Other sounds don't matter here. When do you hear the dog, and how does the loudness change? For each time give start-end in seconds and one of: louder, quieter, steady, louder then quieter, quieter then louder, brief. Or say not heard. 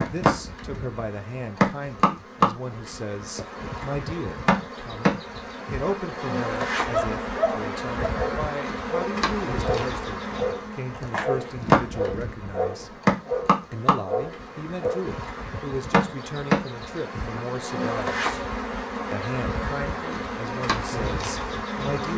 6.8-15.1 steady.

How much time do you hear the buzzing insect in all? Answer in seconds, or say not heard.
22 s.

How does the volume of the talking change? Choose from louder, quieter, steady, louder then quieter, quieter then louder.
steady.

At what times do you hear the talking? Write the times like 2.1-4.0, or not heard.
0.0-13.0, 13.7-18.4, 19.1-22.1.